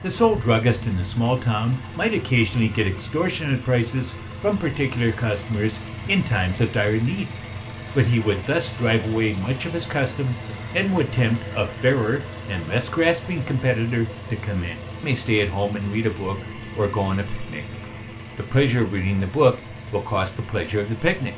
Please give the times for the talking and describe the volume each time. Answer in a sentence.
The talking can be heard from 0.0 to 7.3 s, at a steady volume; from 8.0 to 17.6 s, at a steady volume; and briefly from 18.4 to 21.3 s.